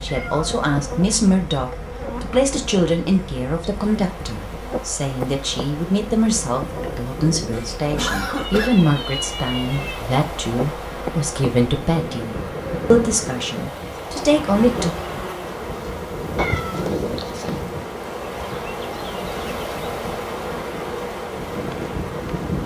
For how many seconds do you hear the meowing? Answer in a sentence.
You can hear the meowing for 3 seconds altogether.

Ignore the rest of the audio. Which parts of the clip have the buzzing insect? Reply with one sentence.
You can hear the buzzing insect from 0.0 to 22.6 s.